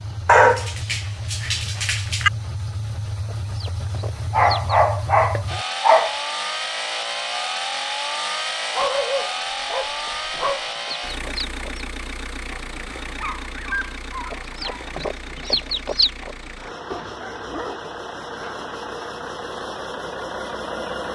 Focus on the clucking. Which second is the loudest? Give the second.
16 s.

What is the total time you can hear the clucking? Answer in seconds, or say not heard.
5 s.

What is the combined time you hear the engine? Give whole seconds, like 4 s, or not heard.
21 s.